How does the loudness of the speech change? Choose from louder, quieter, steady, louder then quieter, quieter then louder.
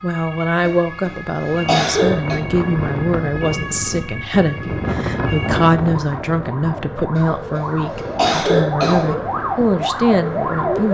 steady.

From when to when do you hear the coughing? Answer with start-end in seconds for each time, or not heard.
0.7-2.4, 7.2-9.2.